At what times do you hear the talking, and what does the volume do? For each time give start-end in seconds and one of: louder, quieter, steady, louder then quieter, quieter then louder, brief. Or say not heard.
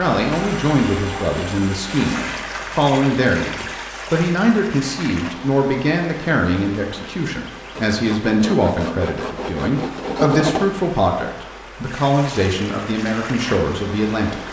0.0-14.4 steady.